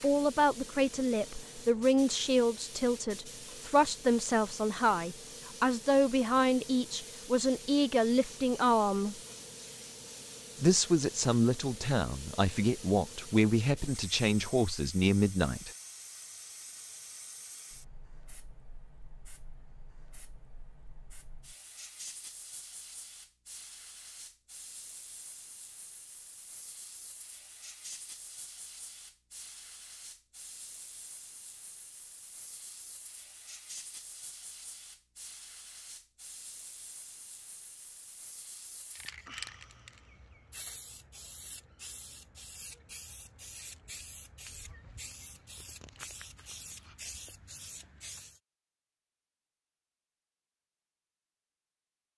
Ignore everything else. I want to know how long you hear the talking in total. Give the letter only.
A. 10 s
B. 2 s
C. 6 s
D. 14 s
D.